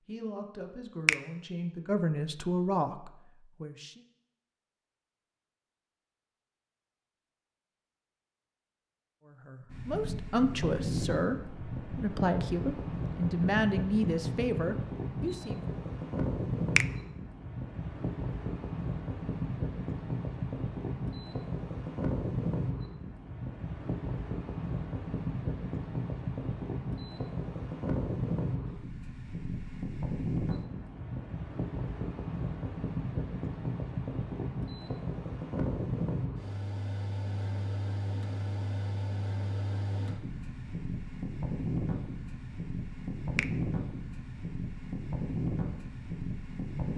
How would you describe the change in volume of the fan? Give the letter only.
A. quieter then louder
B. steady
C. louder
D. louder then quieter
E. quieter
B.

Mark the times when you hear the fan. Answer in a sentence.
The fan can be heard from 9.7 to 46.9 s.